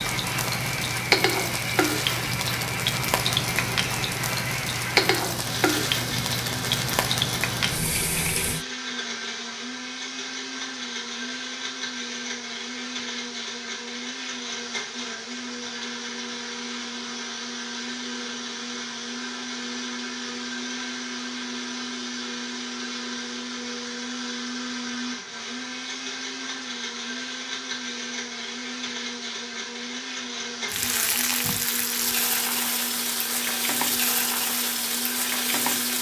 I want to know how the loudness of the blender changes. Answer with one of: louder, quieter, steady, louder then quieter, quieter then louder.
steady.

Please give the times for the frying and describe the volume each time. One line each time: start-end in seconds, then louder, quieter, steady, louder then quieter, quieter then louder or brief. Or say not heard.
0.0-8.7 steady
30.6-35.9 steady.